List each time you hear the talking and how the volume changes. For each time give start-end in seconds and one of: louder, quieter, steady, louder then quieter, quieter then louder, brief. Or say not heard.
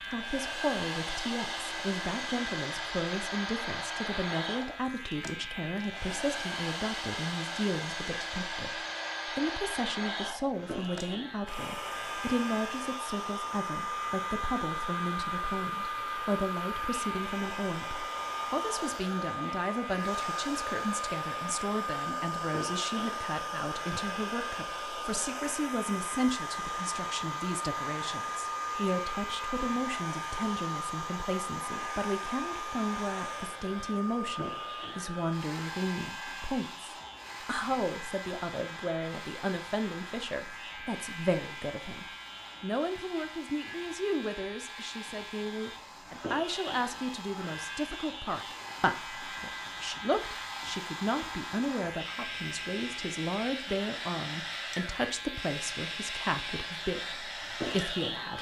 0.0-58.3 steady.